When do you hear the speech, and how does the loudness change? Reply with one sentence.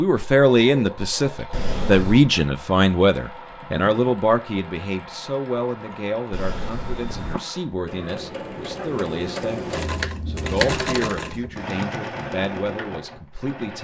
The speech can be heard from 0.0 to 13.7 s, getting quieter.